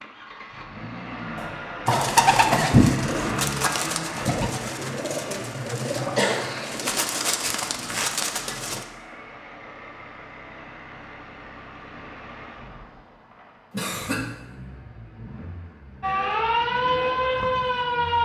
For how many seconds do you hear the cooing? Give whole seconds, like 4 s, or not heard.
7 s.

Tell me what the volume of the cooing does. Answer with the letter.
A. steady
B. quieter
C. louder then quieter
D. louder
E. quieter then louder
B.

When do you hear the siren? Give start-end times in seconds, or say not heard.
16.0-18.2.